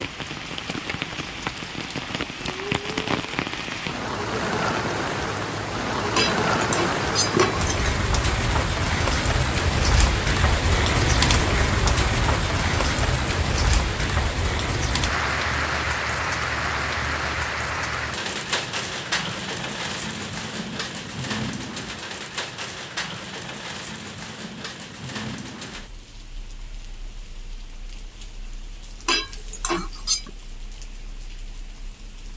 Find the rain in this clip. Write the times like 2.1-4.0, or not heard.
0.0-32.3.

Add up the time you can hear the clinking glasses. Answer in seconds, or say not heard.
3 s.